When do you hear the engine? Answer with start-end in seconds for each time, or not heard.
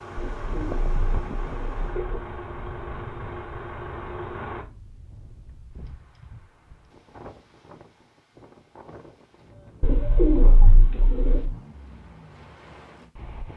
0.0-4.7.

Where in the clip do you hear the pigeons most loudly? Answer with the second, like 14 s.
10 s.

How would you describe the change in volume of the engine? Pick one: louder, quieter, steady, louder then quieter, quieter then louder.
steady.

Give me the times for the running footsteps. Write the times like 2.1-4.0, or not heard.
not heard.